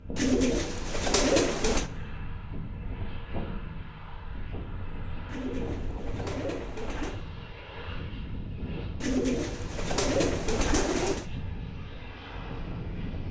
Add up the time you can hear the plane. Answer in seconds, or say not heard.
13 s.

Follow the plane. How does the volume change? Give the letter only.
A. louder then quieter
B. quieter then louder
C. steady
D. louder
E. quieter
C.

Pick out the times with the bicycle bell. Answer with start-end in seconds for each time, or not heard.
not heard.